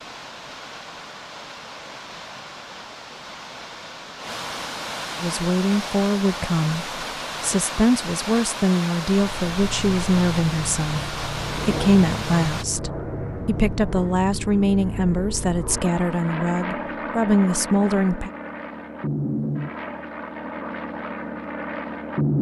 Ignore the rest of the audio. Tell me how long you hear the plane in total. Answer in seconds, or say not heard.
13 s.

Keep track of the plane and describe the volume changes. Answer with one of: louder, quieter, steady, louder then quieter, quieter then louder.
steady.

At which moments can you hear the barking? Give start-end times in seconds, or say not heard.
not heard.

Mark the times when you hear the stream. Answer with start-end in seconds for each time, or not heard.
0.0-12.7.